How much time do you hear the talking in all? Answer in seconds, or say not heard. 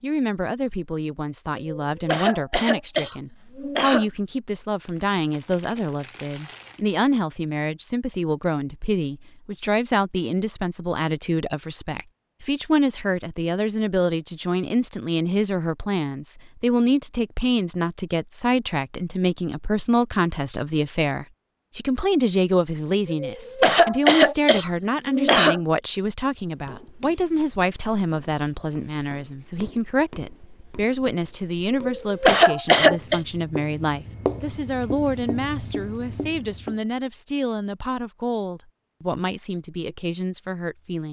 41 s.